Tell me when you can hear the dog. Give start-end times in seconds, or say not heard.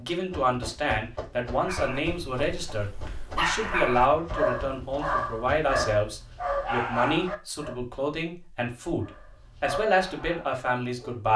1.5-7.8, 9.0-11.2.